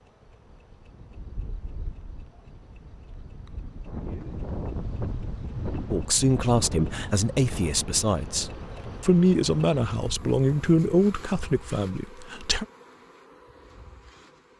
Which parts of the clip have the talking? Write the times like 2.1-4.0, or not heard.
5.9-12.7.